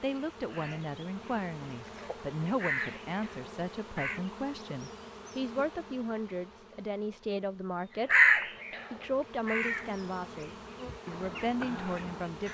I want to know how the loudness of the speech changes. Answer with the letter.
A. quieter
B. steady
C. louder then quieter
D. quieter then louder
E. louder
B.